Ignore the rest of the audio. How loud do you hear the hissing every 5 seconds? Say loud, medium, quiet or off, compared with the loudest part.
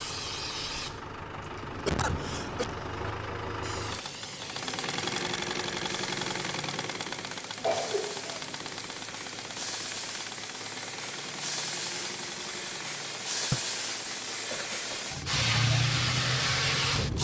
quiet, quiet, medium, loud.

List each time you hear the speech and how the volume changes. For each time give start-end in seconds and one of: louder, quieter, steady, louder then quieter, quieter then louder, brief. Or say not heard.
not heard.